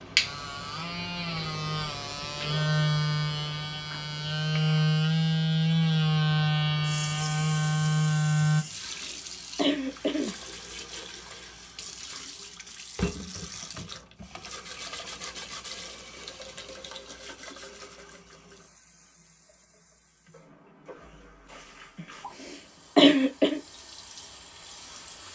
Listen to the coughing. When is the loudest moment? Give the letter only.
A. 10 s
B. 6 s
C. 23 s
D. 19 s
C.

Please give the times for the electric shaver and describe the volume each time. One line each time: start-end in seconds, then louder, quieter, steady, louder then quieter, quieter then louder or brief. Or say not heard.
0.0-8.7 louder.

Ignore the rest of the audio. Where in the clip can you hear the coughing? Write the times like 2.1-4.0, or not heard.
8.6-10.3, 22.4-23.6.